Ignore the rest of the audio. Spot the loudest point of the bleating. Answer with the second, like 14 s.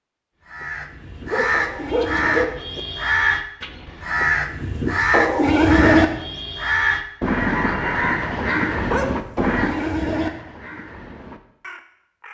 6 s.